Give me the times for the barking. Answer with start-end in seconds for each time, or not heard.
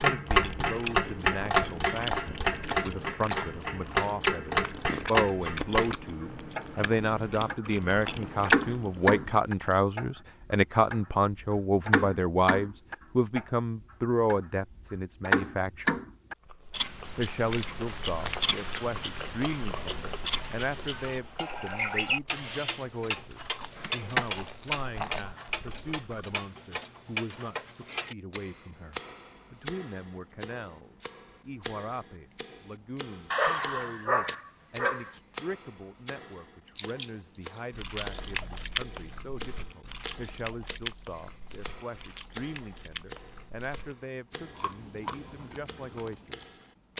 33.3-35.1.